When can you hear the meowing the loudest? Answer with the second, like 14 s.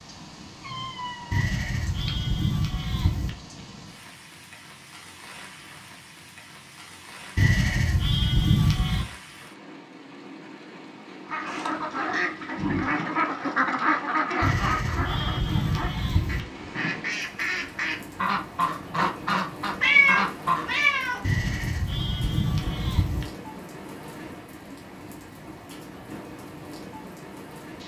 20 s.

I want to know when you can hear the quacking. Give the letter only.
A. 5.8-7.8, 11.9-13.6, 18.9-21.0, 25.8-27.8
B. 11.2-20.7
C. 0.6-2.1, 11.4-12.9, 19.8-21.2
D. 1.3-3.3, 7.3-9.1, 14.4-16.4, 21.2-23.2
B.